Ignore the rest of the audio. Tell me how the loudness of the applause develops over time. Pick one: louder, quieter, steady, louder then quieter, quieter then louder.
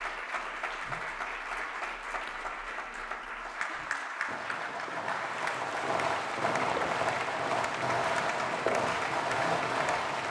steady.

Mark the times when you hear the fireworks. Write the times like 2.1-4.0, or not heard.
3.7-10.2.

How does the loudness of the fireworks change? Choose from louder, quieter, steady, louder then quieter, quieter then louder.
louder.